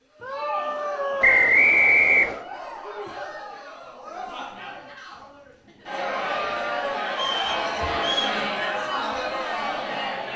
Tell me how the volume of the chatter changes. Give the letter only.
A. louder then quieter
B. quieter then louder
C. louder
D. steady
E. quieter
C.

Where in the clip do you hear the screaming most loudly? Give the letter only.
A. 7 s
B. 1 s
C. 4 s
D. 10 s
B.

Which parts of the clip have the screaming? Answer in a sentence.
You can hear the screaming from 0.2 to 1.6 s and from 6.3 to 7.0 s.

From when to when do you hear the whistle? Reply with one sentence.
You can hear the whistle from 1.2 to 2.4 s and from 7.1 to 8.4 s.